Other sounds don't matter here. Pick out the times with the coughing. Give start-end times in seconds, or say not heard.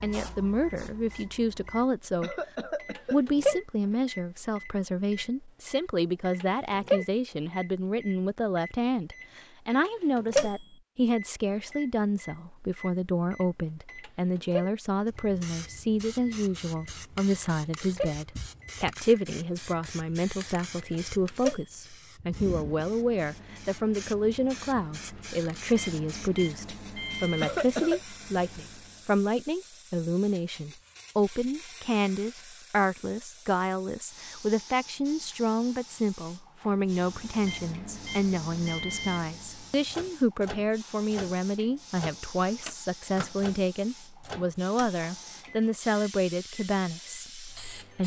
2.2-3.2, 27.4-28.0.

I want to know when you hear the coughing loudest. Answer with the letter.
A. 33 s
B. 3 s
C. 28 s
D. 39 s
C.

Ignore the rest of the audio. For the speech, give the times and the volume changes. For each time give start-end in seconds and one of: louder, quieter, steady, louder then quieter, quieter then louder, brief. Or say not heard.
0.0-2.4 brief
3.1-48.0 steady.